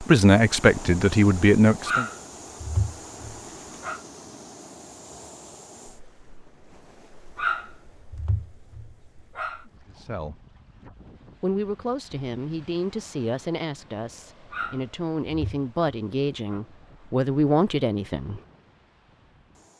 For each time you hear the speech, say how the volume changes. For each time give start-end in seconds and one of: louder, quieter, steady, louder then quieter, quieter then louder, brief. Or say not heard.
0.0-2.0 brief
9.9-10.3 brief
11.4-18.4 louder.